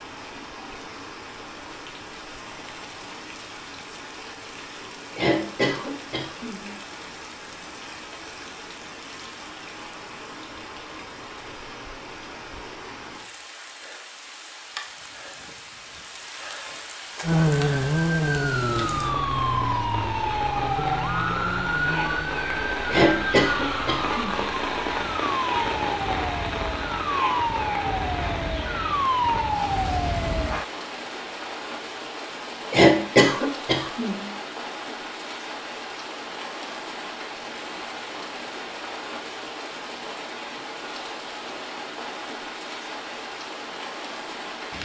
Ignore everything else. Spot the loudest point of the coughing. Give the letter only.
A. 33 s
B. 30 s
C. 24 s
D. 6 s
A.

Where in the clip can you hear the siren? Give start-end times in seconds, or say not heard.
17.2-30.6.